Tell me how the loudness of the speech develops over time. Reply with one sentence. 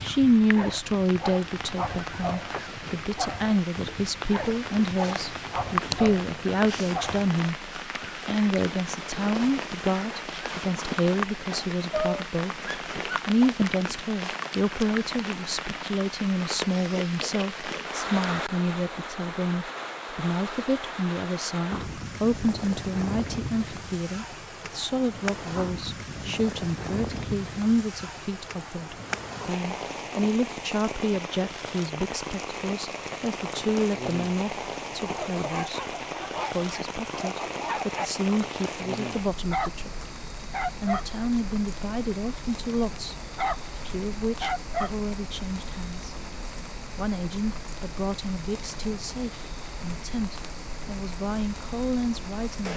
The loudness of the speech goes down.